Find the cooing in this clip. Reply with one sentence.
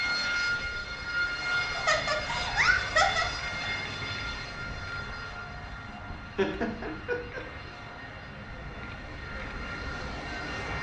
You can't hear the cooing here.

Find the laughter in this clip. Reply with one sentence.
You can hear the laughter from 1.8 to 3.2 s and from 6.3 to 7.4 s.